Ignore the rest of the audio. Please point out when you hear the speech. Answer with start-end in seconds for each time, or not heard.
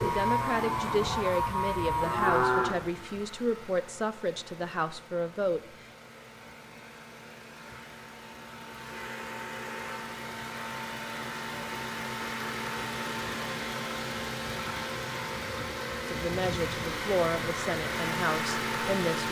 0.0-5.6, 16.1-19.2.